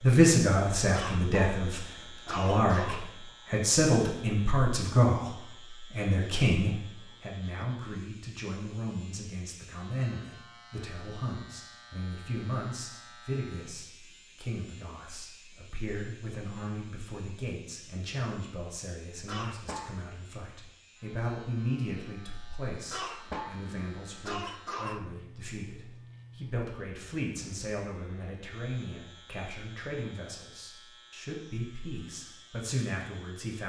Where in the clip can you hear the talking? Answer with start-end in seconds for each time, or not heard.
0.0-33.6.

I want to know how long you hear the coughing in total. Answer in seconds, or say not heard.
5 s.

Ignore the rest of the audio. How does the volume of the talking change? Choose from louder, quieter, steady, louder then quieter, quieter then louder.
quieter.